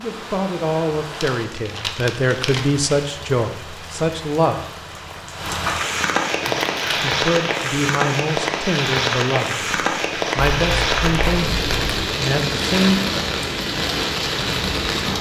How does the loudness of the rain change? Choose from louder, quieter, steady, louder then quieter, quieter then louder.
louder.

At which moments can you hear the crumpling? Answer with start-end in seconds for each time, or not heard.
1.1-3.2, 6.4-7.0, 10.3-12.1.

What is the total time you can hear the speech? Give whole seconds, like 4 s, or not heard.
11 s.